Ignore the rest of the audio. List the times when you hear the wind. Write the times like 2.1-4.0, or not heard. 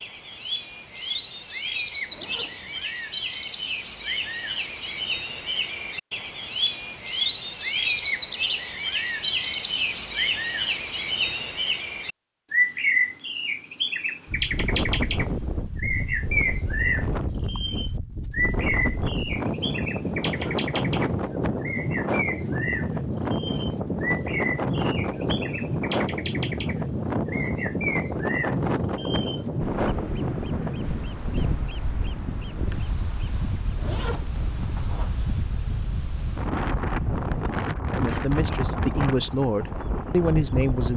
14.2-40.9.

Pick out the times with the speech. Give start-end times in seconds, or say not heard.
37.9-40.9.